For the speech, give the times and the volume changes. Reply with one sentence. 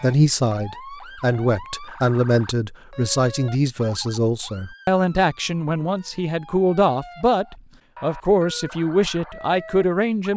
The speech can be heard from 0.0 to 10.3 s, at a steady volume.